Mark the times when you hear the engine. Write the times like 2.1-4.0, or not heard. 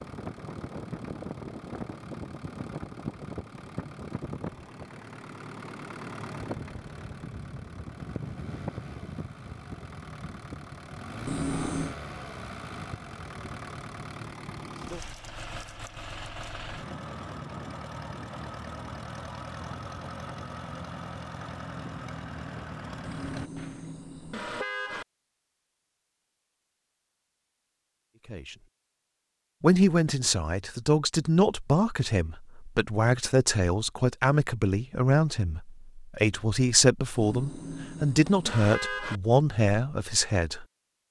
0.0-23.9.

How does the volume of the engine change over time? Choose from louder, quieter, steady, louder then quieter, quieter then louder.
steady.